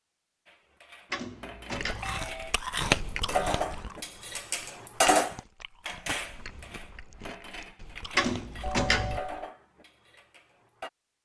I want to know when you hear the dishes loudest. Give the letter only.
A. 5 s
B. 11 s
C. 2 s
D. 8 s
A.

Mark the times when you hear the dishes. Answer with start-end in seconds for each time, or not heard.
0.5-10.9.